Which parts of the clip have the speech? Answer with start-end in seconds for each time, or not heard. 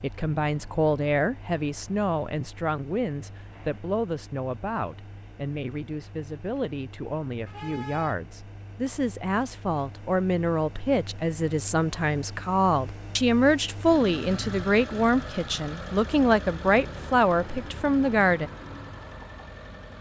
0.0-18.5.